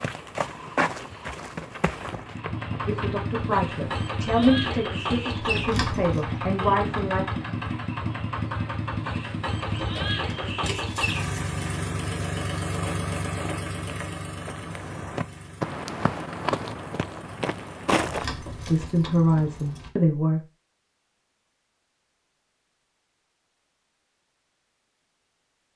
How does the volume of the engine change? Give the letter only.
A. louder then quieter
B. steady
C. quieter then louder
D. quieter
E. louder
D.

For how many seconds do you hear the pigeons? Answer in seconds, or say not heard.
not heard.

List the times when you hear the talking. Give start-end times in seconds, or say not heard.
2.9-7.2, 18.6-20.4.